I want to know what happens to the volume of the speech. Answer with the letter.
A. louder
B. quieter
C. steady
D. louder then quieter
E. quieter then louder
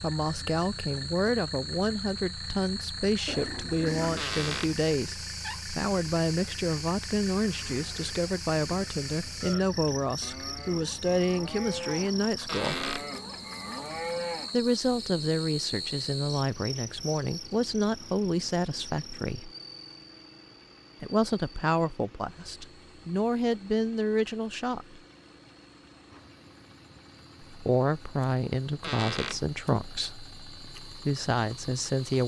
C.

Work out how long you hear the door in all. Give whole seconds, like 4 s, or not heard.
3 s.